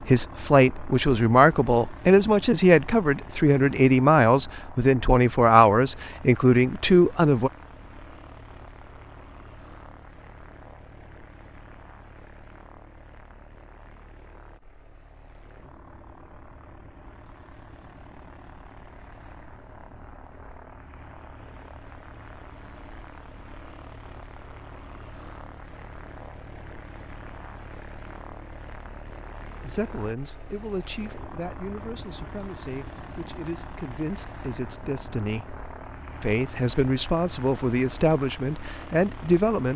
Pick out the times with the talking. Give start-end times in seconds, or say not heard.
0.0-7.5, 29.6-35.5, 36.2-39.7.